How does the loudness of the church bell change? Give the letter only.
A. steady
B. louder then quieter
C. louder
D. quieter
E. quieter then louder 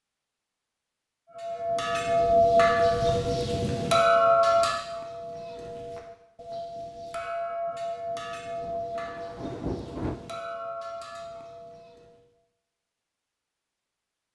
D.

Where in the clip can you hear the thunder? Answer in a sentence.
The thunder can be heard from 8.6 to 10.2 s.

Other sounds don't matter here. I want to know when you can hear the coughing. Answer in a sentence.
The coughing can't be heard in this clip.